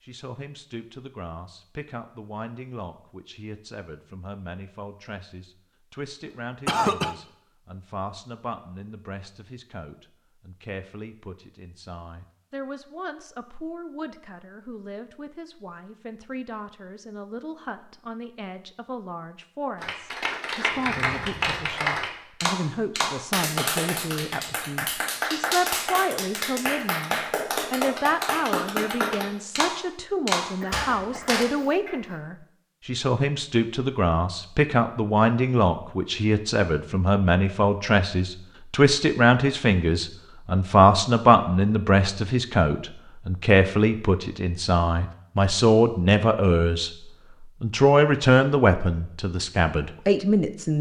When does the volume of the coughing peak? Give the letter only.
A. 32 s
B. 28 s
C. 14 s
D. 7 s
D.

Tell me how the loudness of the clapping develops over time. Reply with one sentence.
The loudness of the clapping stays about the same.